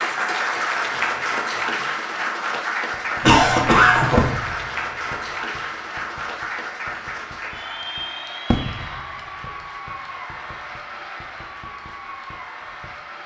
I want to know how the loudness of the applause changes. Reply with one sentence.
The volume of the applause goes down.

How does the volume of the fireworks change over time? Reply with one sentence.
The volume of the fireworks goes up, then down.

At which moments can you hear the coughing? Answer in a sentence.
You can hear the coughing from 3.2 to 4.3 s.